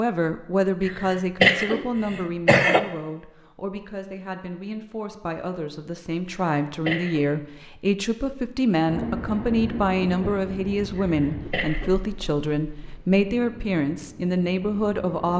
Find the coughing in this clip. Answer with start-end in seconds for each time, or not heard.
0.8-2.8, 6.2-7.2, 10.9-11.9.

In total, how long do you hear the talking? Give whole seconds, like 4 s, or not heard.
15 s.